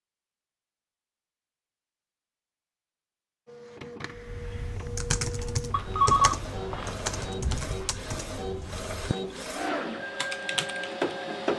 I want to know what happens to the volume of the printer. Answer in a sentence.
The loudness of the printer goes up.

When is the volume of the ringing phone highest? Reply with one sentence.
The loudest moment of the ringing phone is at 6 seconds.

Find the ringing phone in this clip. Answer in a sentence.
You can hear the ringing phone from 5.7 to 7.4 s.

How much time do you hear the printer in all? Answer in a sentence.
You can hear the printer for 8 seconds altogether.